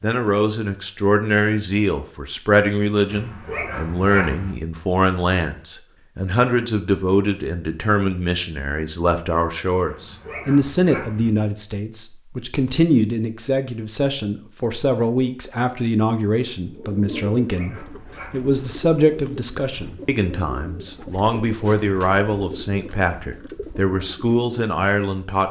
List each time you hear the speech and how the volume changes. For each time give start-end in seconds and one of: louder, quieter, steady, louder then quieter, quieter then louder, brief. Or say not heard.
0.0-25.4 steady.